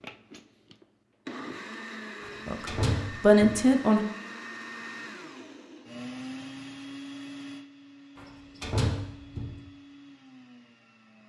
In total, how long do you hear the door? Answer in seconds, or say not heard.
3 s.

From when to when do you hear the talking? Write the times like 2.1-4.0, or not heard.
2.5-4.0.